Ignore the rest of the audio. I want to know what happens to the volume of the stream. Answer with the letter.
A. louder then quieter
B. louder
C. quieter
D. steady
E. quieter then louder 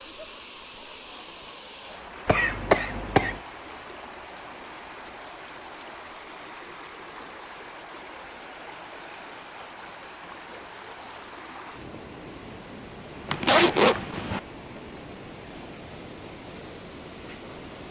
D.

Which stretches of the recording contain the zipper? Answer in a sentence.
You can hear the zipper from 13.2 to 14.4 s.